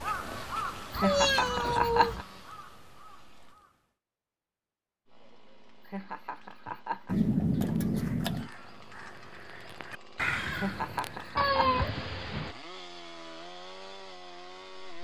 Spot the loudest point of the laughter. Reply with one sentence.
The volume of the laughter peaks at 2 seconds.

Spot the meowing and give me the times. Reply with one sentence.
The meowing can be heard from 0.9 to 2.2 s, from 7.0 to 8.5 s and from 11.3 to 12.6 s.